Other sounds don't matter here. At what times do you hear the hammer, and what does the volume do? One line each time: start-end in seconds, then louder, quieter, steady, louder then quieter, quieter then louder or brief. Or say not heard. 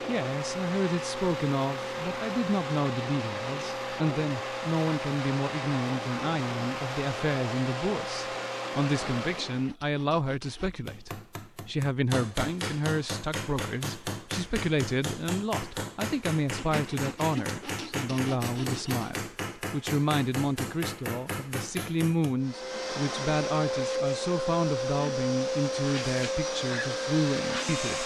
10.7-22.4 steady.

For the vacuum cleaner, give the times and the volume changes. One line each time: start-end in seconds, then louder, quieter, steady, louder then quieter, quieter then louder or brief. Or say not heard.
0.0-9.8 steady
22.4-28.0 steady.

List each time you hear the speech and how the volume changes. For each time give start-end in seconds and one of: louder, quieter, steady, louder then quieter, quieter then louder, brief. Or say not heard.
0.1-28.0 steady.